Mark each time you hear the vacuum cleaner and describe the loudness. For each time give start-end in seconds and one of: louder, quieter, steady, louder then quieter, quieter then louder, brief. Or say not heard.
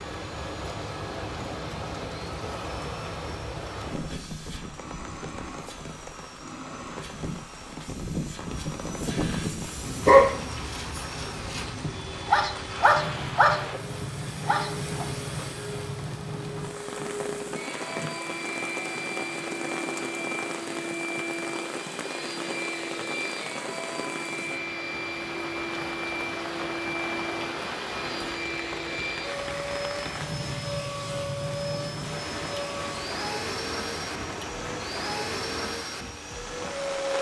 0.0-37.1 louder.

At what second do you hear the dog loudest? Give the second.
10 s.